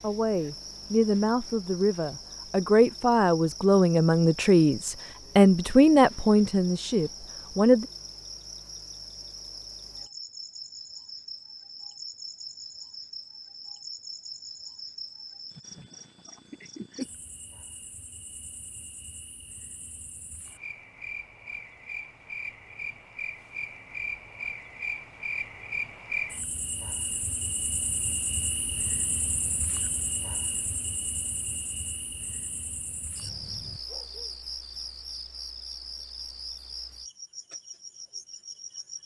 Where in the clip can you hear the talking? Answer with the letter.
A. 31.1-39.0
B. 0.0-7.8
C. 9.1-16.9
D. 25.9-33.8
B.